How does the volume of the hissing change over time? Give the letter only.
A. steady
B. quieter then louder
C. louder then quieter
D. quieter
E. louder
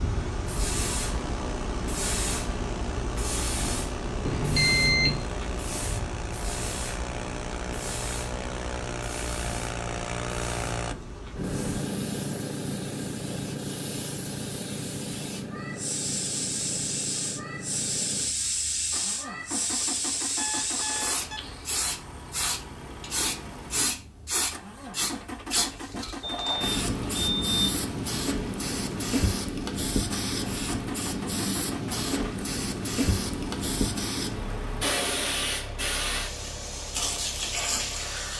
B.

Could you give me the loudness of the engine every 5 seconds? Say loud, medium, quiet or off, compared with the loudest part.
medium, loud, loud, medium, medium, medium, medium, medium.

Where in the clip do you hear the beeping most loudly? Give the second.
5 s.